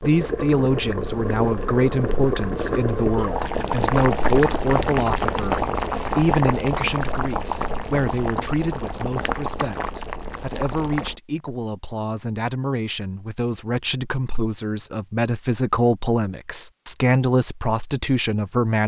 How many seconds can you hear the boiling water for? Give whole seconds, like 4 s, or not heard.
11 s.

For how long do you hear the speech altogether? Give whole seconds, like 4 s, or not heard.
19 s.